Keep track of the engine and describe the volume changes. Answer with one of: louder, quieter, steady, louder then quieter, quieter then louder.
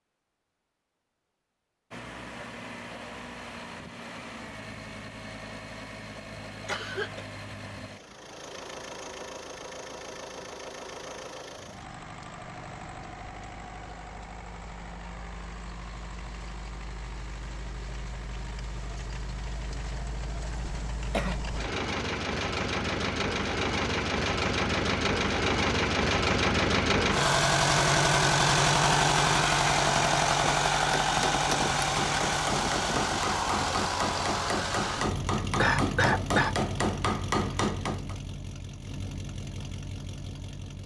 louder then quieter.